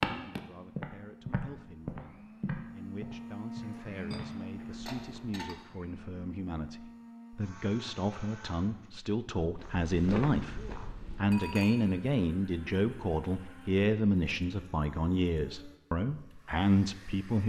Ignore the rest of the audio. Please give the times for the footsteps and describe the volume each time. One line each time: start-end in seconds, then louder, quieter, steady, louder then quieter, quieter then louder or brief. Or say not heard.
0.0-5.5 quieter
9.4-11.4 brief.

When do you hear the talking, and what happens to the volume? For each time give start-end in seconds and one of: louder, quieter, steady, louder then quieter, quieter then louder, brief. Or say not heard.
0.1-17.4 louder.